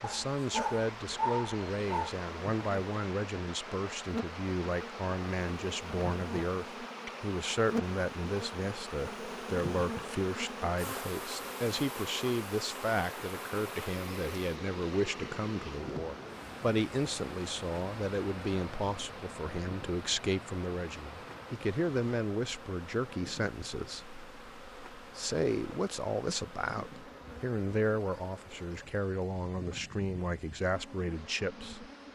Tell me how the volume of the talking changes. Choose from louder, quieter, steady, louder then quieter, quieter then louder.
steady.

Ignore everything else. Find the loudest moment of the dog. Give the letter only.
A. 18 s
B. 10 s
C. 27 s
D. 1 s
D.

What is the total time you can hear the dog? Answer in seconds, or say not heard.
2 s.